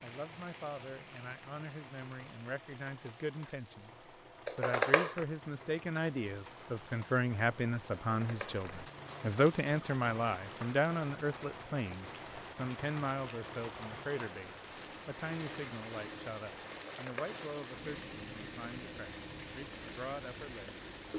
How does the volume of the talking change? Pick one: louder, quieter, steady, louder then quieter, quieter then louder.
louder then quieter.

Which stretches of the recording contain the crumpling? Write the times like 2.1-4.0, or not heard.
4.5-5.2, 7.9-9.8, 16.7-17.4.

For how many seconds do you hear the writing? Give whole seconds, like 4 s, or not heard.
not heard.